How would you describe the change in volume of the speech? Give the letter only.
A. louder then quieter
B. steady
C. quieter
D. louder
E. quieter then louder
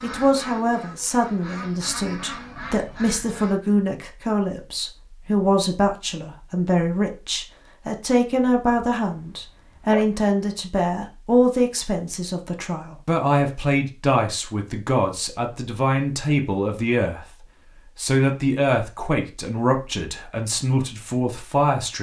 B.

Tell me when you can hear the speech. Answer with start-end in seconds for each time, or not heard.
0.0-17.3, 17.9-21.9.